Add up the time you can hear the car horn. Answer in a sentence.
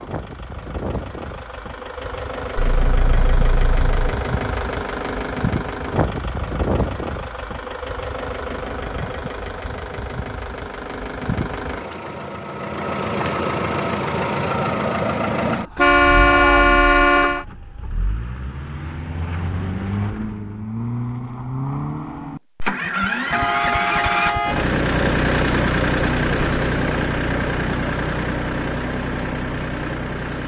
You can hear the car horn for 5 seconds altogether.